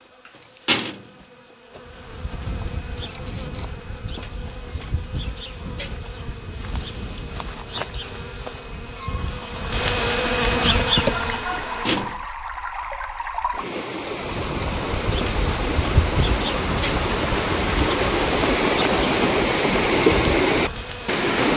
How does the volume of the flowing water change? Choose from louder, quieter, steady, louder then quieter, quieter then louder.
louder.